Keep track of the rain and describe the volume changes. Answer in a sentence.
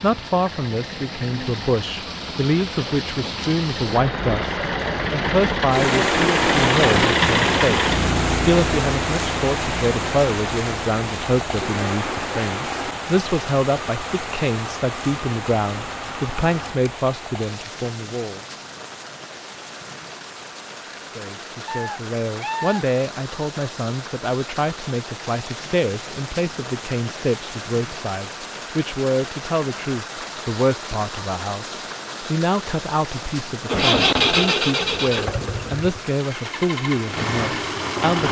The volume of the rain goes down.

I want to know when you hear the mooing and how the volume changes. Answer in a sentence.
You can't hear the mooing here.